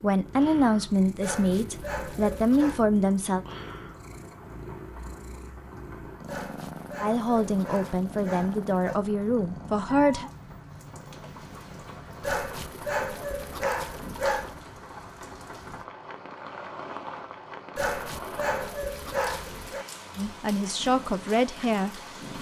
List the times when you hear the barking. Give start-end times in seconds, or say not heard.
1.2-2.8, 6.2-9.0, 12.2-14.6, 17.8-19.9.